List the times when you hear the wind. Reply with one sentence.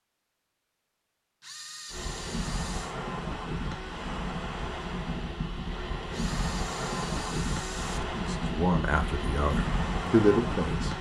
You can hear the wind from 1.9 to 10.9 s.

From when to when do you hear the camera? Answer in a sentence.
You can hear the camera from 1.4 to 3.0 s and from 6.1 to 8.1 s.